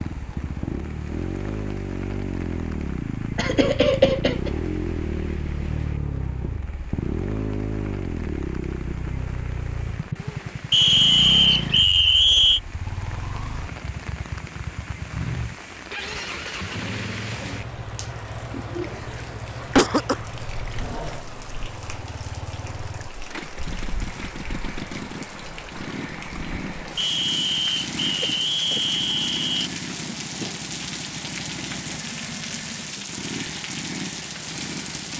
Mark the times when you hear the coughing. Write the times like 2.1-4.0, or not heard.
3.4-4.5, 18.5-20.2, 28.2-28.9.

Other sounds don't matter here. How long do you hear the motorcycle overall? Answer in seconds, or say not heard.
35 s.